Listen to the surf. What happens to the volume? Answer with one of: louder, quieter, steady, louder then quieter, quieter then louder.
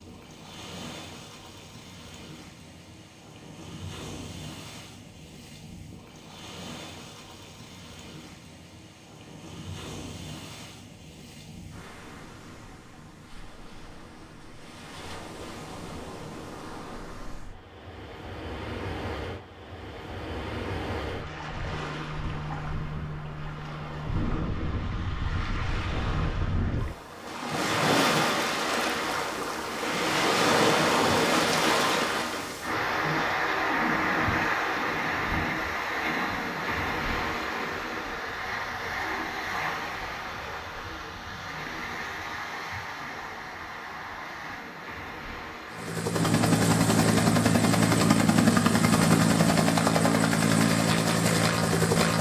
louder then quieter.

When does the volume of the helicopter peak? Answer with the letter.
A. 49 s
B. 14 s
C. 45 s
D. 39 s
A.